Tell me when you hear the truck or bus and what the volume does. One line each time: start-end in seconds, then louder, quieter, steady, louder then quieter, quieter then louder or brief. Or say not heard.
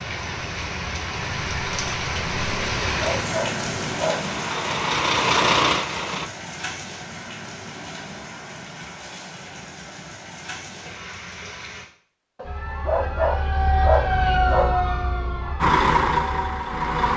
2.2-6.3 louder
15.6-17.1 brief.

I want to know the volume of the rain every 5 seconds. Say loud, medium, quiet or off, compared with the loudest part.
loud, medium, medium, off.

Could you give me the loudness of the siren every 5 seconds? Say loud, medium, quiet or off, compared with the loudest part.
off, off, loud, medium.